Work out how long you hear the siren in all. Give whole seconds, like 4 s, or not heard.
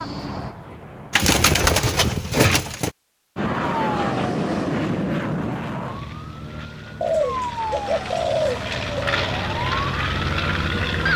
7 s.